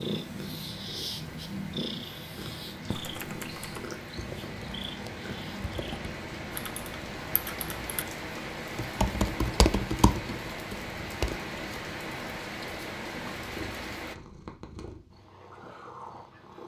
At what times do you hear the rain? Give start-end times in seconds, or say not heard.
0.0-14.2.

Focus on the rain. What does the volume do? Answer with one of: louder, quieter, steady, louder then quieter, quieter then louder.
louder.